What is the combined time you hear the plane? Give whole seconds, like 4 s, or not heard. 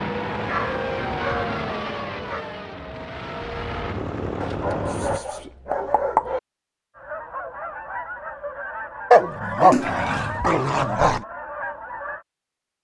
5 s.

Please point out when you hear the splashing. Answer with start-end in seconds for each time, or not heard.
9.7-10.2.